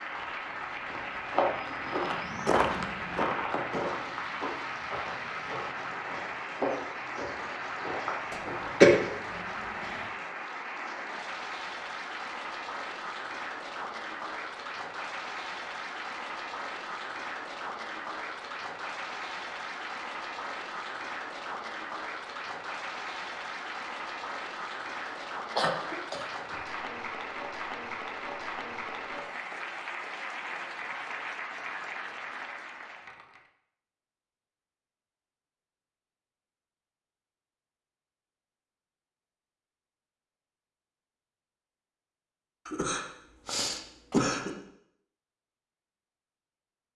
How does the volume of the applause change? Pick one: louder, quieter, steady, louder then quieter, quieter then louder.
steady.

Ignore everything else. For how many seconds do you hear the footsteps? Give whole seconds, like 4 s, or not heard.
8 s.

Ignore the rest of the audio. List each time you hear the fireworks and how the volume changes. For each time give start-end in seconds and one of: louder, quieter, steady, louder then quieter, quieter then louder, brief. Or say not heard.
not heard.